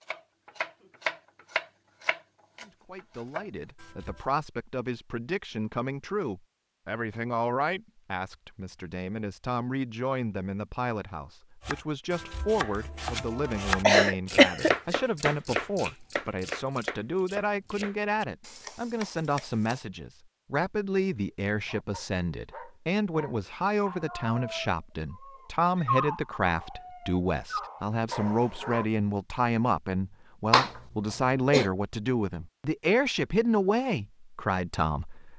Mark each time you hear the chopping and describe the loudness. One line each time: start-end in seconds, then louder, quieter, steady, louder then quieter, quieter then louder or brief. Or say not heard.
0.0-4.2 quieter then louder
11.6-19.8 louder then quieter.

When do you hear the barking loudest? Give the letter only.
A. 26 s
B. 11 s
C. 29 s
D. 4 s
A.